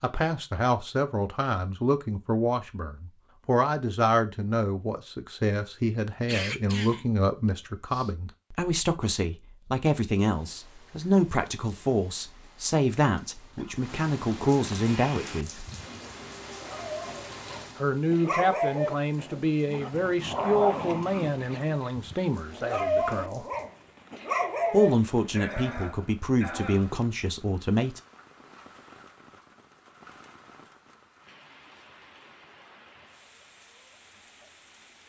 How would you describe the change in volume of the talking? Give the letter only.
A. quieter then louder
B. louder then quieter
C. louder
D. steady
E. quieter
D.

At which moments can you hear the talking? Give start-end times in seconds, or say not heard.
0.0-15.7, 17.8-23.4, 24.7-28.0.